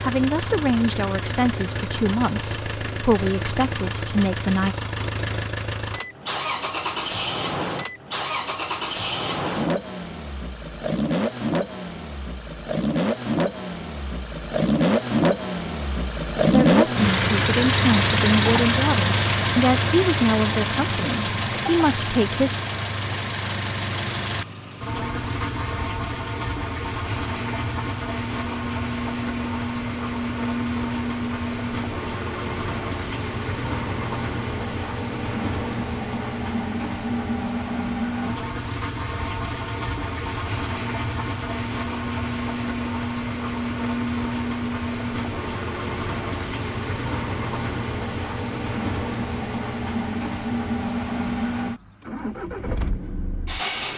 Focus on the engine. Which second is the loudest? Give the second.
17 s.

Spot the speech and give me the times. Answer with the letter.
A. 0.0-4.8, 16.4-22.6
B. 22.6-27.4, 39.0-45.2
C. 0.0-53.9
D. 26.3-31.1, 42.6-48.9
A.